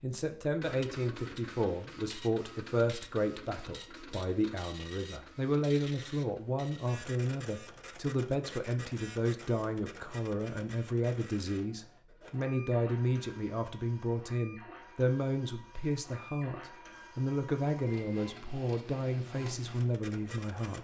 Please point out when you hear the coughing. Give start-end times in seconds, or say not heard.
not heard.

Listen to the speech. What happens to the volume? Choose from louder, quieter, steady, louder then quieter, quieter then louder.
steady.